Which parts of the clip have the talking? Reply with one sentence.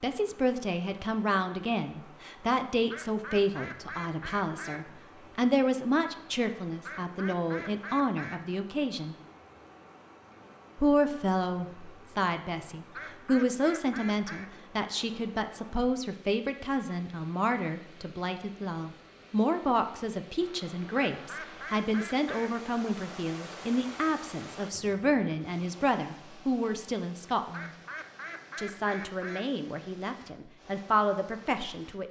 You can hear the talking from 0.0 to 9.2 s, from 10.8 to 27.7 s and from 28.6 to 32.0 s.